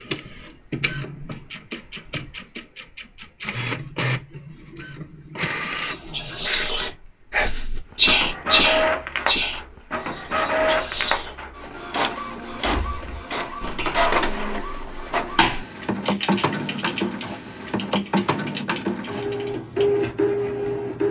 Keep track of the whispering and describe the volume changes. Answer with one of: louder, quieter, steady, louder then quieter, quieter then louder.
louder then quieter.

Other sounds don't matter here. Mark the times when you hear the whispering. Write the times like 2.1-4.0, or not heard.
5.8-11.3.